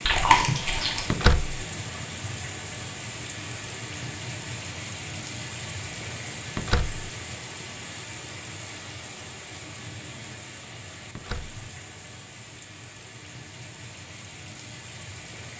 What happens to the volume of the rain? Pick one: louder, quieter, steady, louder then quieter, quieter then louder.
quieter.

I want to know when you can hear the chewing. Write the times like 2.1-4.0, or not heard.
0.1-1.1.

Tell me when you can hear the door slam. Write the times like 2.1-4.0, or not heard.
1.1-1.6, 6.5-7.0, 11.2-11.6.